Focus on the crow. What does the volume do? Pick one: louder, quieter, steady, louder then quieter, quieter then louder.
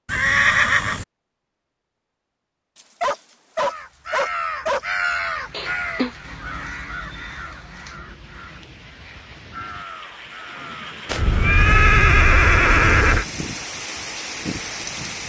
quieter then louder.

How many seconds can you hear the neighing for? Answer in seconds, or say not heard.
4 s.